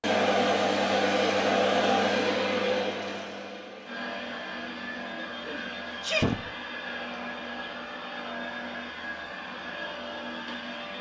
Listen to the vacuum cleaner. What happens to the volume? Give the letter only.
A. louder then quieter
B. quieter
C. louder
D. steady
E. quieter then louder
B.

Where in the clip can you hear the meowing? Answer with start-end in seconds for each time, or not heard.
not heard.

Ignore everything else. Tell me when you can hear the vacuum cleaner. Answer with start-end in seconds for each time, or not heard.
0.0-10.9.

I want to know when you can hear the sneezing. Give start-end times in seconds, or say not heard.
5.5-6.5.